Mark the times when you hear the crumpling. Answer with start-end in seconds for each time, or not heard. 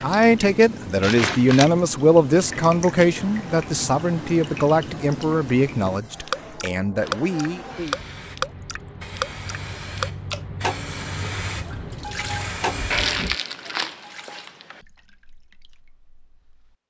1.0-1.7, 12.9-14.8.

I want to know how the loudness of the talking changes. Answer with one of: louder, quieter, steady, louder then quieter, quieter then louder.
quieter.